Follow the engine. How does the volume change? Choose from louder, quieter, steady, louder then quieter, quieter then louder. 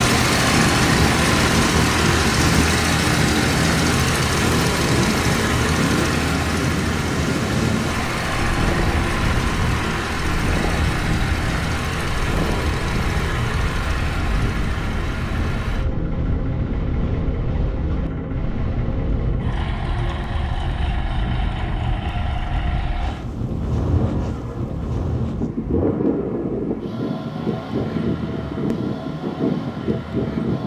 quieter.